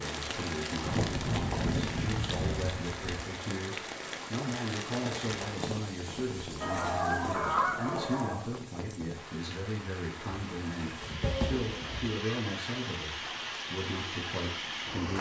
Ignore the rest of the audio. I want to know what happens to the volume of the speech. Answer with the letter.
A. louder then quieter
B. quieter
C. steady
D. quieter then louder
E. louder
C.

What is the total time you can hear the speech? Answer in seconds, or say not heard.
15 s.